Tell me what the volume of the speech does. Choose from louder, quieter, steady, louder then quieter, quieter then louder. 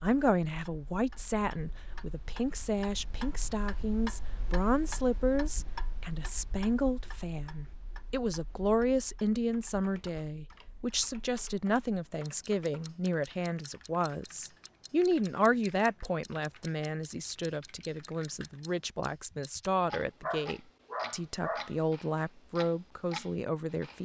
steady.